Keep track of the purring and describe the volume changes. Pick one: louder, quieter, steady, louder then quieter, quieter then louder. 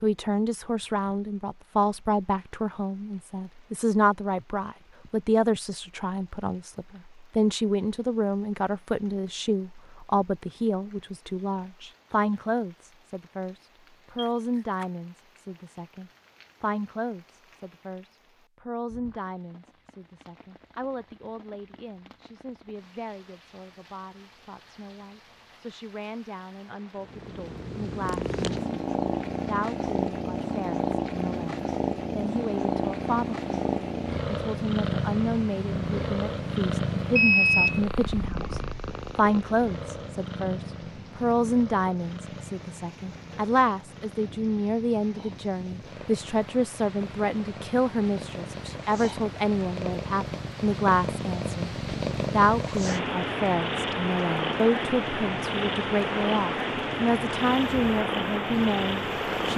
quieter then louder.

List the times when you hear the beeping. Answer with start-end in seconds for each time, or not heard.
14.2-14.8, 37.1-37.8.